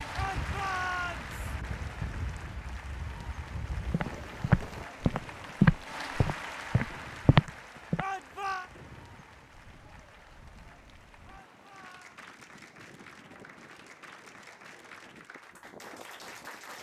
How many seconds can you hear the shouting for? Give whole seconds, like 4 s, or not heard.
3 s.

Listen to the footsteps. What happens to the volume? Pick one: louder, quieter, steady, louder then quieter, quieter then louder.
quieter then louder.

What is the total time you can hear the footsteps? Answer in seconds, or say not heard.
4 s.